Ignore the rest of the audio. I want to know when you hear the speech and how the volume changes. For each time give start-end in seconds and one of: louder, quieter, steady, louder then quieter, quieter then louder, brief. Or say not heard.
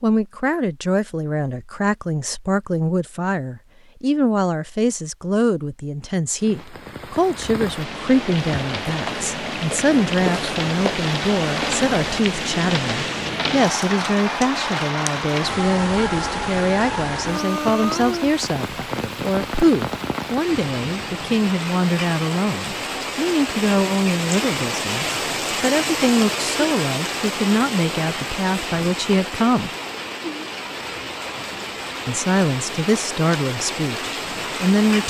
0.0-29.7 steady
32.0-35.0 brief.